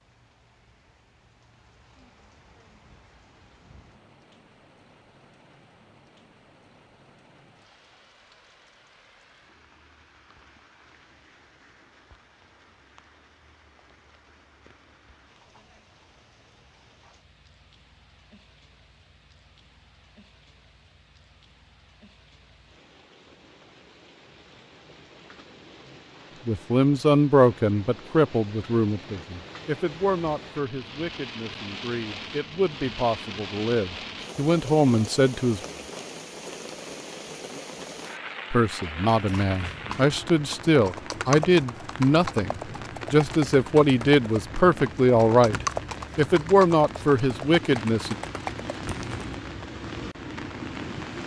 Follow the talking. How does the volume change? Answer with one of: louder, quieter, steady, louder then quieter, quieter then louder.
quieter then louder.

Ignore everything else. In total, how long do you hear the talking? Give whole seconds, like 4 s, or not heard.
19 s.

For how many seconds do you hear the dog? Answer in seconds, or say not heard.
not heard.